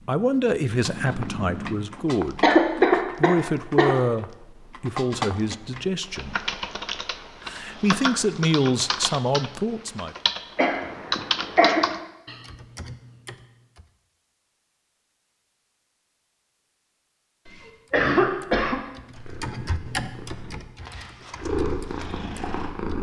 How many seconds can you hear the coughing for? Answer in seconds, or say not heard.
4 s.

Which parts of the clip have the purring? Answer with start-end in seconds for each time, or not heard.
0.0-1.8, 19.1-22.9.